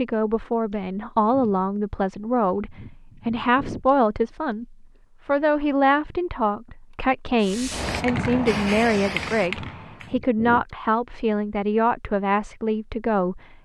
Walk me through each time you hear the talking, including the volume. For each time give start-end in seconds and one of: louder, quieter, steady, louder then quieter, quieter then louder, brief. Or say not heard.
0.0-13.4 steady.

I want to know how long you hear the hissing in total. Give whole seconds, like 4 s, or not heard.
3 s.